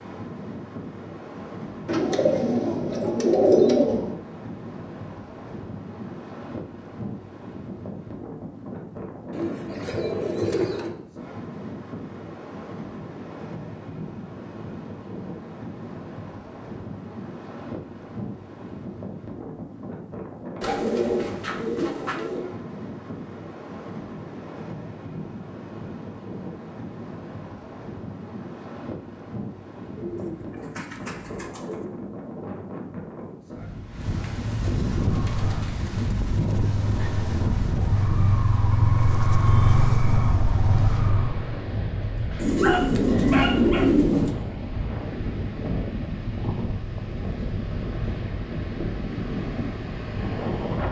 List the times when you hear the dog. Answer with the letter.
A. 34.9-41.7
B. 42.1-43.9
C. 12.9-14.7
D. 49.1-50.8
B.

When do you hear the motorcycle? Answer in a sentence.
The motorcycle can be heard from 34.9 to 41.7 s.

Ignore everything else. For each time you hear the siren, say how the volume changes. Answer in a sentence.
You can't hear the siren here.